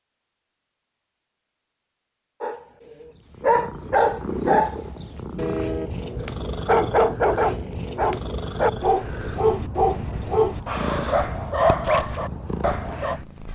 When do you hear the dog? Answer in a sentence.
The dog can be heard from 2.4 to 13.2 s.